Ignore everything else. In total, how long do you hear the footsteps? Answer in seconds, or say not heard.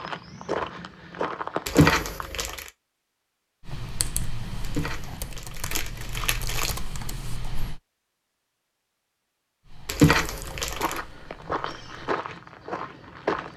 5 s.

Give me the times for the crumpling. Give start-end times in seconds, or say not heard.
1.6-2.7, 4.8-6.8, 9.8-11.0.